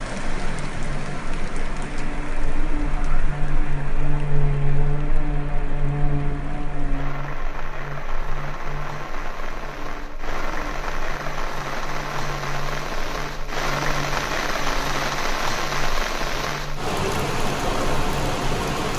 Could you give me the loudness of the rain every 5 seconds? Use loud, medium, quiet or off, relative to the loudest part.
medium, medium, loud, loud.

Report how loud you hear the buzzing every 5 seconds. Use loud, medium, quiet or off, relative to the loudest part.
loud, loud, medium, medium.